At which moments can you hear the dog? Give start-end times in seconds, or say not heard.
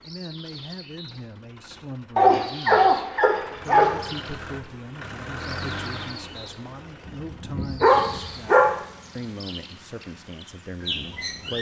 2.1-4.0, 7.0-8.7.